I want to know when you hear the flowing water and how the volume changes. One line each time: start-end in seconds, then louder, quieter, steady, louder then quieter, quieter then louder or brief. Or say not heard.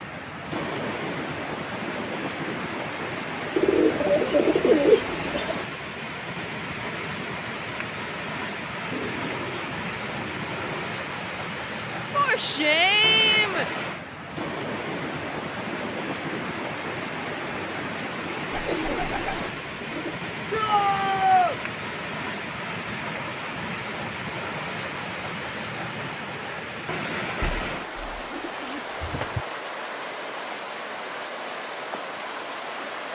0.0-33.0 steady.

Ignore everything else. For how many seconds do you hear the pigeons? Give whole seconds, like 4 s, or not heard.
8 s.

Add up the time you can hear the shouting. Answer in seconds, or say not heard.
3 s.